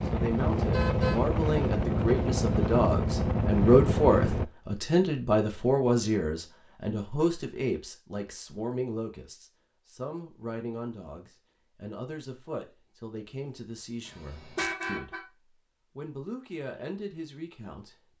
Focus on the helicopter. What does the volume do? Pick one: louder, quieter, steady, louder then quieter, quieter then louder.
steady.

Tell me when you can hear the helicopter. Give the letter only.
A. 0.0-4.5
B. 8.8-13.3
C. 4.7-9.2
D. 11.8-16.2
A.